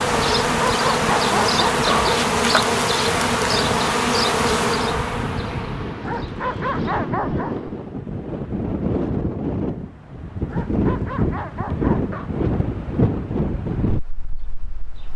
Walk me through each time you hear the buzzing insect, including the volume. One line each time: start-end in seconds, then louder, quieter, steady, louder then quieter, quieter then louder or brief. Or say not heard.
0.0-7.8 quieter.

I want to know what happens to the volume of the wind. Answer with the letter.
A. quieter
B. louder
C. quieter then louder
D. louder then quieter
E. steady
B.